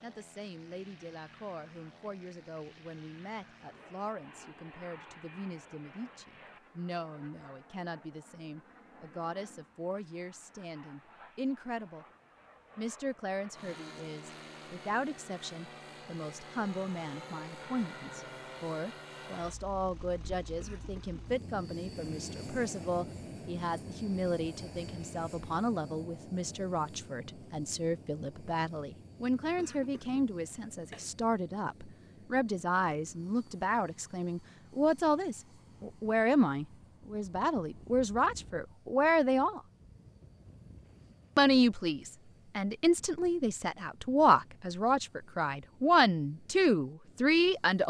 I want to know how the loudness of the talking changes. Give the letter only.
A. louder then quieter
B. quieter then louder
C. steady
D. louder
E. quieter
D.